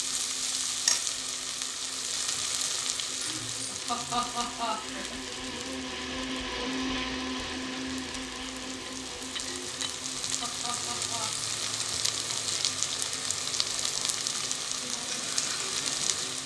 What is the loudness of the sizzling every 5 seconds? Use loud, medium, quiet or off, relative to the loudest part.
loud, medium, loud, loud.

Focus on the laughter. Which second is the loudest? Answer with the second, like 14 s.
4 s.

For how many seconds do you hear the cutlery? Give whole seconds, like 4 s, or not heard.
2 s.